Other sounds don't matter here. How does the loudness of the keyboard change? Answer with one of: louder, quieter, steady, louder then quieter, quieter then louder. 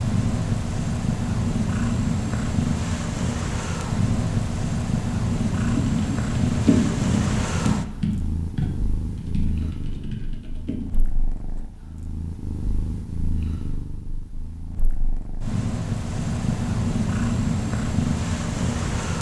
quieter.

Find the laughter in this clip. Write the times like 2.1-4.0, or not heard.
not heard.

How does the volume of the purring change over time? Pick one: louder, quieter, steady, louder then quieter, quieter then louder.
quieter then louder.